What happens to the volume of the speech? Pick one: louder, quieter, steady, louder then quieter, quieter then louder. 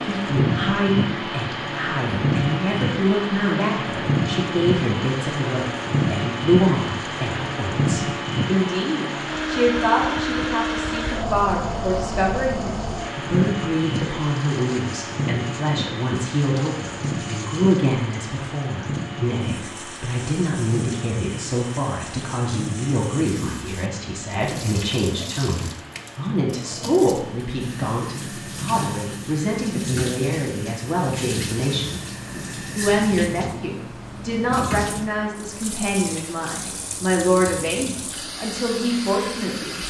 steady.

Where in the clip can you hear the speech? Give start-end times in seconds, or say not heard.
0.0-39.8.